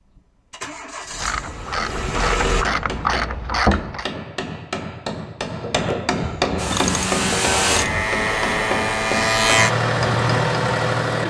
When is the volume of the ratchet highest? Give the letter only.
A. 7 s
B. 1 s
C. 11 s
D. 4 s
D.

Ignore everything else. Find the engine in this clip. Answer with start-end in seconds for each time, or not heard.
0.1-2.6, 6.5-11.2.